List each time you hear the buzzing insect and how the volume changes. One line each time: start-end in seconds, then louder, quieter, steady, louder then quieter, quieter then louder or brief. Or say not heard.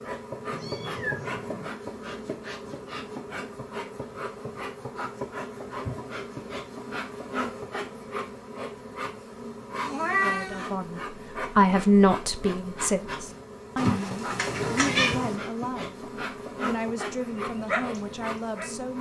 0.0-18.9 steady.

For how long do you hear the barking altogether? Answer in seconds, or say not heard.
2 s.